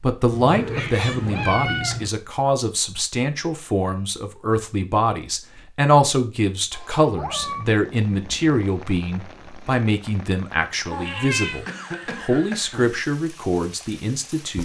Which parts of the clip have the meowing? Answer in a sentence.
The meowing can be heard from 0.3 to 2.1 s, from 6.7 to 7.7 s and from 10.9 to 11.6 s.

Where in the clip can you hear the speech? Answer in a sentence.
The speech can be heard from 0.0 to 14.6 s.